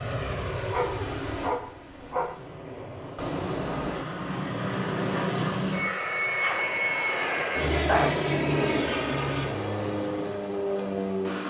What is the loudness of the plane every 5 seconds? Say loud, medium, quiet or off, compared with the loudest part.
medium, loud, loud.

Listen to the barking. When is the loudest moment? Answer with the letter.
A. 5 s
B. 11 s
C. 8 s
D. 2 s
C.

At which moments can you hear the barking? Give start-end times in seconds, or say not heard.
0.6-2.4, 6.4-8.2.